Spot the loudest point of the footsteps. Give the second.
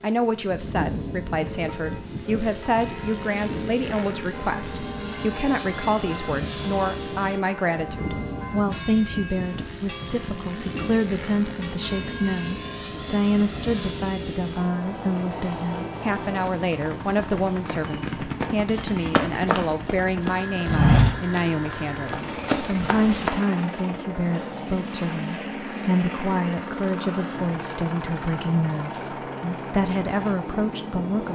21 s.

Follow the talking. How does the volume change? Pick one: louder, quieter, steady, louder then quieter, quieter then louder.
steady.